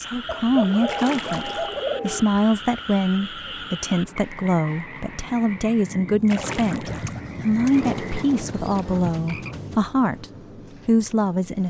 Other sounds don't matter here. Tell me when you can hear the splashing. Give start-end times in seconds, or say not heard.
0.8-1.8, 6.2-7.2.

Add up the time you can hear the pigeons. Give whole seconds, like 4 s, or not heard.
4 s.